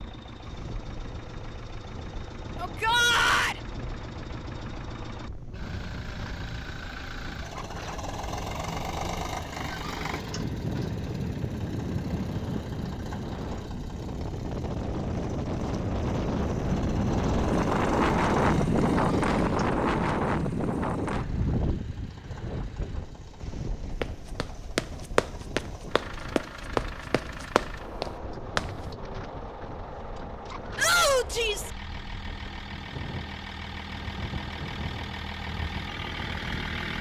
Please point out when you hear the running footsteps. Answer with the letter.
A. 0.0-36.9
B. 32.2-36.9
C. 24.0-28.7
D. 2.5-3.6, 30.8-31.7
C.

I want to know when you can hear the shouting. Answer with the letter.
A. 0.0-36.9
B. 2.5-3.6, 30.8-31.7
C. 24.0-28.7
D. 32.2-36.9
B.